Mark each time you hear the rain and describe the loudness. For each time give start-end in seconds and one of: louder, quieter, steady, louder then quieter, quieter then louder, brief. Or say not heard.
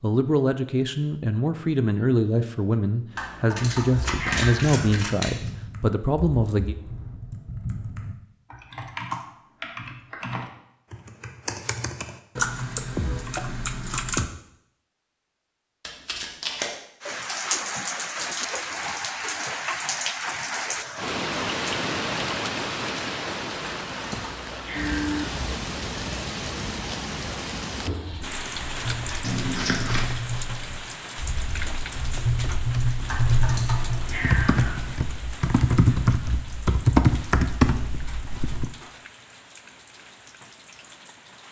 17.0-41.4 quieter.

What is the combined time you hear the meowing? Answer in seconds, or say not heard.
5 s.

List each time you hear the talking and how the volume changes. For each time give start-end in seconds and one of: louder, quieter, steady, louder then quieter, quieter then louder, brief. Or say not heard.
0.0-6.8 steady.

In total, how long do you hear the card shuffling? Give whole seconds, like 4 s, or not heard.
4 s.